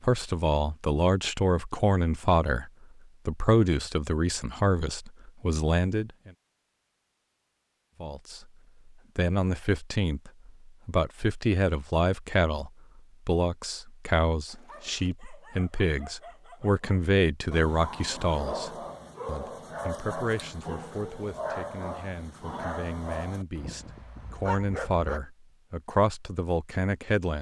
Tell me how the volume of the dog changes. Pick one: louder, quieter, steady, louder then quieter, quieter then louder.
louder.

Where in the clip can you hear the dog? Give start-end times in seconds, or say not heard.
14.4-25.2.